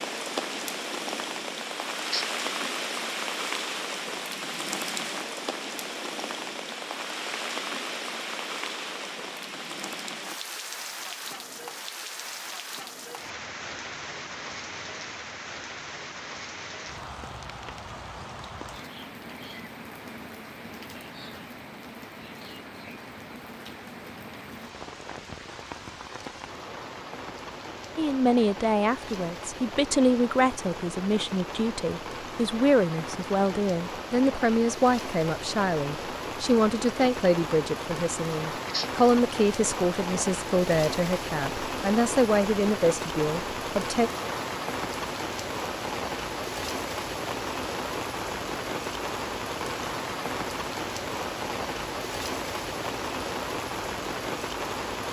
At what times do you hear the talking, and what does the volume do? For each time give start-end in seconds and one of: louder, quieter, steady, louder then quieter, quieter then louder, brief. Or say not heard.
27.9-44.1 steady.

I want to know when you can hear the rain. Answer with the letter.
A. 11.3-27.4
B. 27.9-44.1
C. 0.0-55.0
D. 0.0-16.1
C.